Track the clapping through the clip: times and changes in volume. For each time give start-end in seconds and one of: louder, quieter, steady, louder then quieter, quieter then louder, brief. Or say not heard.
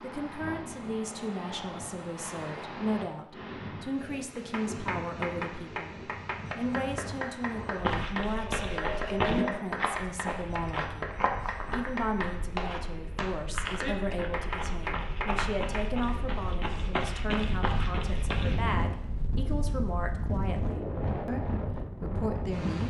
4.3-16.1 steady.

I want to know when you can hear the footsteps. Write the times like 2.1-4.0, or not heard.
7.8-18.6.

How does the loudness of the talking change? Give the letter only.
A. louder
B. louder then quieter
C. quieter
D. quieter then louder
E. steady
E.